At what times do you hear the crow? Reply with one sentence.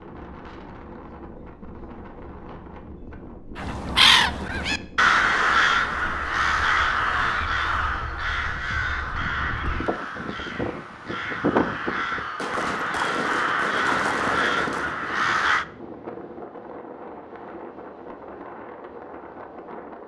The crow can be heard from 3.5 to 15.7 s.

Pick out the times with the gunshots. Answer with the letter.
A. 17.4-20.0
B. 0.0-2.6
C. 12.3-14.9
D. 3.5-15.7
C.